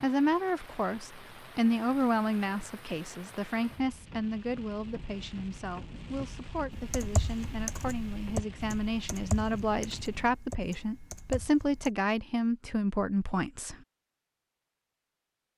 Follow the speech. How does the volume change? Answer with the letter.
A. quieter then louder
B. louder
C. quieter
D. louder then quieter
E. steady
A.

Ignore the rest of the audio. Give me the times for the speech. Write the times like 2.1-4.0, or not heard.
0.0-13.8.